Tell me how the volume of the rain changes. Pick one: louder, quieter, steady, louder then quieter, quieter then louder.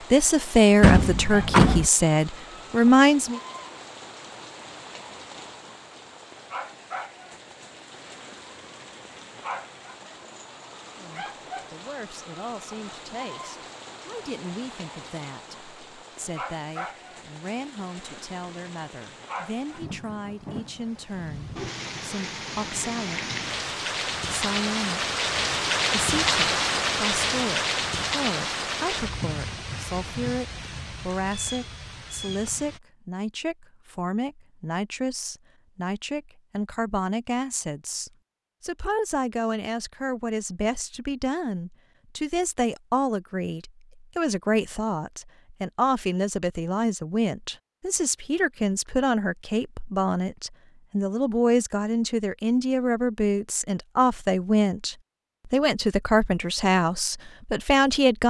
louder.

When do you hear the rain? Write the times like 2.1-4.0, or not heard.
0.0-32.8.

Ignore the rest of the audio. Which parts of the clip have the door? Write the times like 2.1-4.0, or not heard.
0.8-1.9.